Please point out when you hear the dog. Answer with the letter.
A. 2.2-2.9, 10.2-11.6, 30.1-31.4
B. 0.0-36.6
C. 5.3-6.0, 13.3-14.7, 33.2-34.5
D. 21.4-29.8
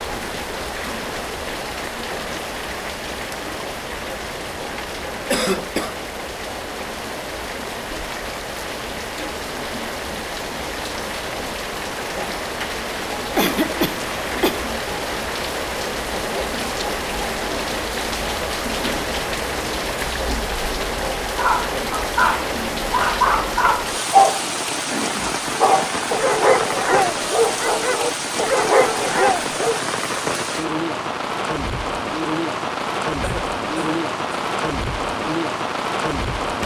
D.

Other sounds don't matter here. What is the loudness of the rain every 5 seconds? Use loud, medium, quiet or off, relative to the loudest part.
medium, medium, loud, loud, loud, loud, loud, loud.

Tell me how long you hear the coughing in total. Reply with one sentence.
You can hear the coughing for 3 seconds altogether.